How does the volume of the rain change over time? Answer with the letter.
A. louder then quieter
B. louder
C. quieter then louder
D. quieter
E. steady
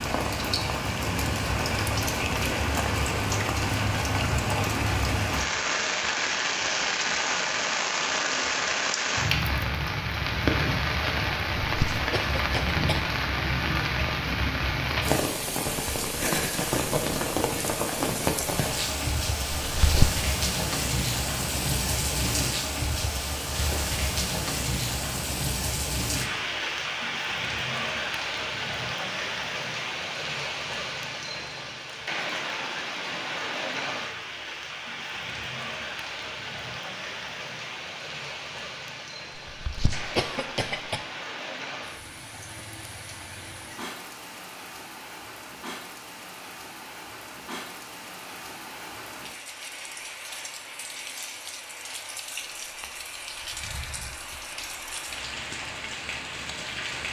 D.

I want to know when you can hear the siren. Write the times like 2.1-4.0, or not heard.
not heard.